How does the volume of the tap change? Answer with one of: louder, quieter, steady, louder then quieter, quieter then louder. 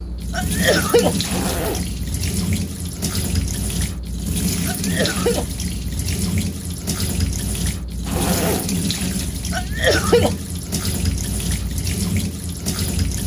steady.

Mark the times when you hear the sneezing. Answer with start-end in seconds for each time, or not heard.
0.3-1.1, 4.7-5.5, 9.5-10.3.